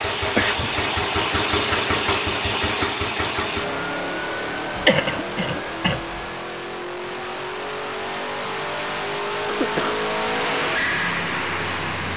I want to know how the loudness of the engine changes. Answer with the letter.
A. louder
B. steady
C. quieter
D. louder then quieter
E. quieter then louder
E.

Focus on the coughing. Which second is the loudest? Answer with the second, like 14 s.
5 s.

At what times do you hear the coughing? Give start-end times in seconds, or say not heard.
0.3-0.8, 4.8-6.2, 9.4-10.1.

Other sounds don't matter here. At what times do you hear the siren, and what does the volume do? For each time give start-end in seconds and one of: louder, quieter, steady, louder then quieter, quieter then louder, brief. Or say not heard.
not heard.